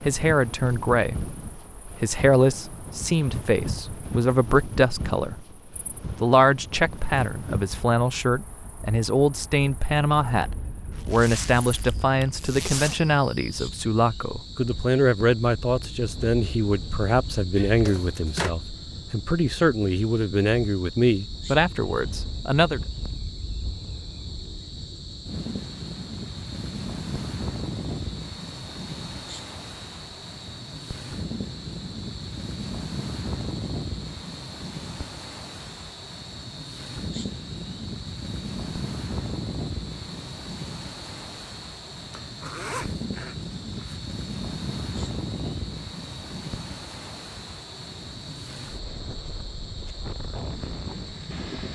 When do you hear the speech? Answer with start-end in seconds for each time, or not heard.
0.0-5.5, 6.2-22.8.